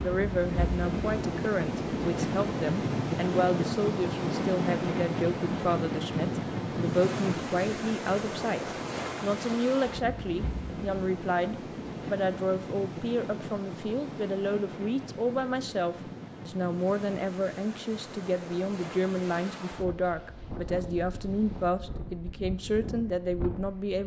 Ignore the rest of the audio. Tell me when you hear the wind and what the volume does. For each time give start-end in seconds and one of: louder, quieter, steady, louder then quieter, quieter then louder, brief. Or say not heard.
0.0-24.0 quieter.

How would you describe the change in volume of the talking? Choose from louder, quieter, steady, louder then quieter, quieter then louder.
steady.